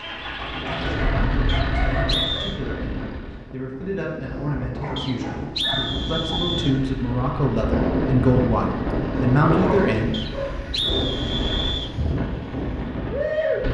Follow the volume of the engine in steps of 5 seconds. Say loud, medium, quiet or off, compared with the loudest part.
loud, medium, loud.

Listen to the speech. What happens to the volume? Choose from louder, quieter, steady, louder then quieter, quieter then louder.
louder.